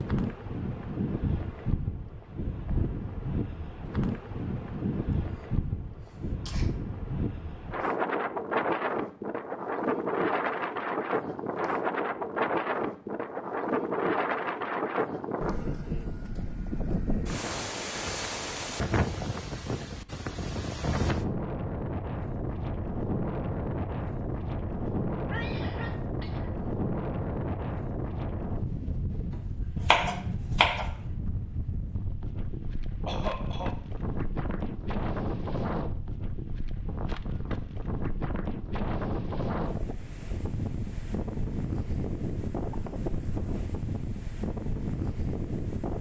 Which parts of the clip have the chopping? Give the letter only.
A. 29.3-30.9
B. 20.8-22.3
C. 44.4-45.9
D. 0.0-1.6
A.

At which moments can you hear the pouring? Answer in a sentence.
You can't hear the pouring here.